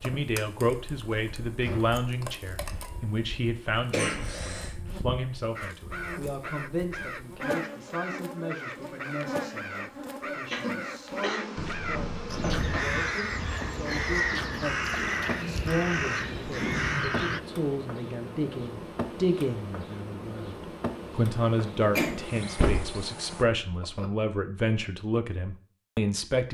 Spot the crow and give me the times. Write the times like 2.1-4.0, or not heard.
5.5-17.4.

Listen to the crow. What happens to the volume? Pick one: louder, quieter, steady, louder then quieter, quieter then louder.
louder.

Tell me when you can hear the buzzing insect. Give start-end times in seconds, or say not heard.
0.0-23.4.